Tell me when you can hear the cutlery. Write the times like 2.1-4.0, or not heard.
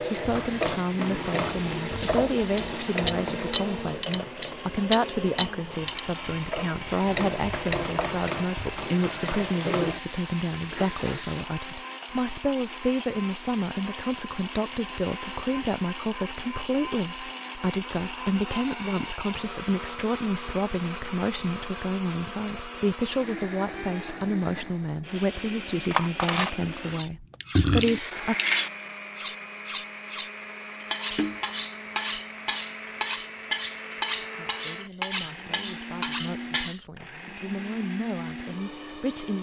0.0-6.0, 25.8-36.9.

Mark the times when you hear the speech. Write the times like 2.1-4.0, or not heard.
0.1-28.4, 34.4-39.3.